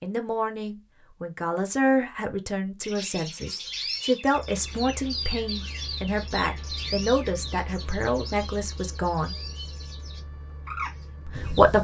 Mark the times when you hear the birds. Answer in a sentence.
The birds can be heard from 2.8 to 11.7 s.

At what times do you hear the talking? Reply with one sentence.
The talking can be heard from 0.0 to 9.3 s and from 11.2 to 11.7 s.